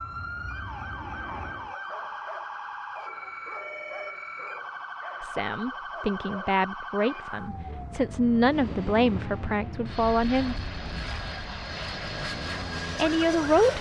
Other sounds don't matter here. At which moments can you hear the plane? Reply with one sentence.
The plane can be heard from 0.0 to 1.8 s and from 8.3 to 13.7 s.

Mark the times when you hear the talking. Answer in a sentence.
The talking can be heard from 5.2 to 10.6 s and from 12.9 to 13.7 s.